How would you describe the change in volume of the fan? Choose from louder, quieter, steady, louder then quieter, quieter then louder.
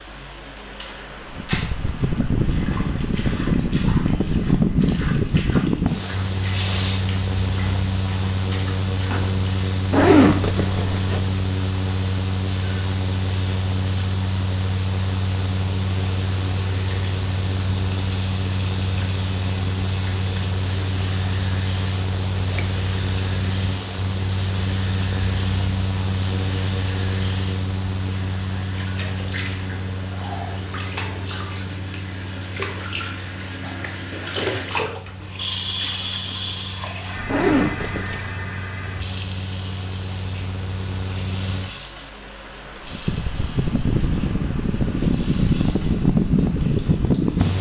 quieter then louder.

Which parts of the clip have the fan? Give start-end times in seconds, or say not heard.
0.0-47.5.